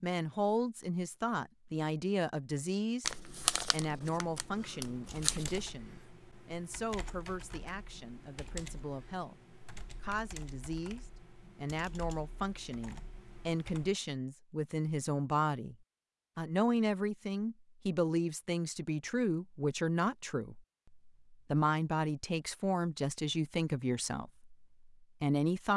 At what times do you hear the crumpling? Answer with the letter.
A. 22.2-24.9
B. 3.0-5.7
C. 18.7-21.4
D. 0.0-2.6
B.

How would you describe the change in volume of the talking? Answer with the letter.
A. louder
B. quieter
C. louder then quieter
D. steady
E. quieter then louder
E.